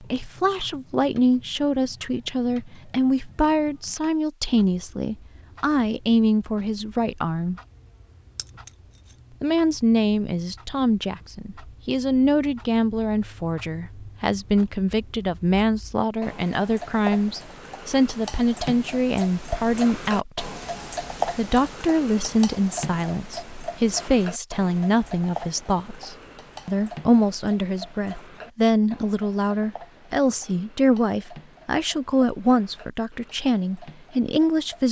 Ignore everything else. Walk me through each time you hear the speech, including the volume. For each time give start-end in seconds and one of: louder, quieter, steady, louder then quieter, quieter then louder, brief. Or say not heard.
0.0-7.6 steady
9.4-20.4 steady
21.4-34.8 steady.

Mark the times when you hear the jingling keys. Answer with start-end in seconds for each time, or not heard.
8.3-9.2.